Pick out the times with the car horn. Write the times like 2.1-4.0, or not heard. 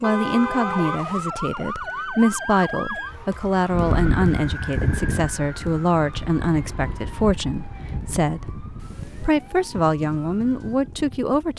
0.0-1.3, 8.8-9.4.